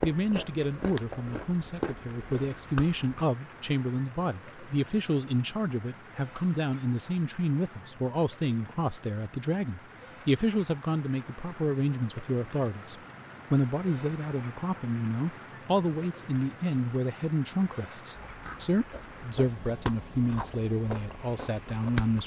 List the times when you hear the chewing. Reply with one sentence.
You can hear the chewing from 0.0 to 3.2 s and from 18.2 to 22.2 s.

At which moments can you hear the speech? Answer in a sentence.
You can hear the speech from 0.0 to 22.2 s.